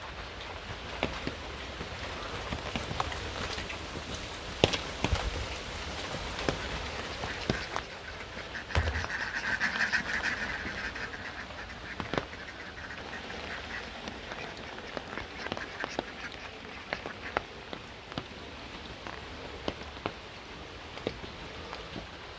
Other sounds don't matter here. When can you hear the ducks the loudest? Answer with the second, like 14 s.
10 s.